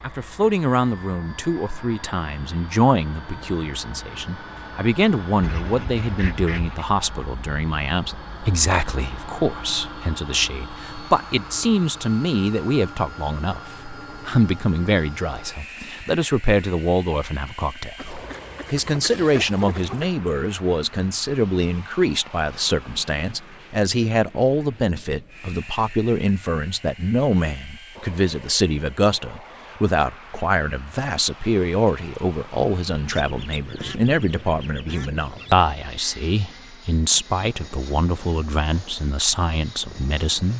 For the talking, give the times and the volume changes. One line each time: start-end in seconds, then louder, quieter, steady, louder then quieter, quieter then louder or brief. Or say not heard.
0.0-40.5 steady.